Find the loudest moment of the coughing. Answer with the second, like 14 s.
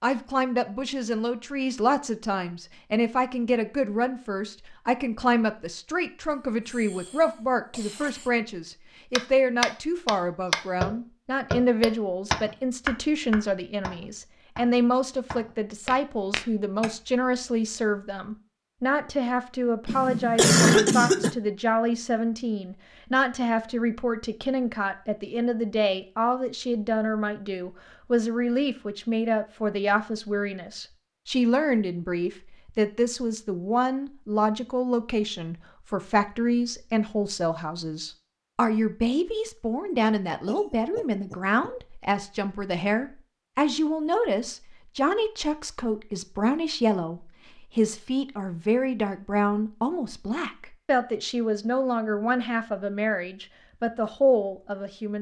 21 s.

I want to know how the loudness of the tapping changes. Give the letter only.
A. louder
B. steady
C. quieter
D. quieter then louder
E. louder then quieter
D.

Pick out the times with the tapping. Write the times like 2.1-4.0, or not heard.
9.2-16.9.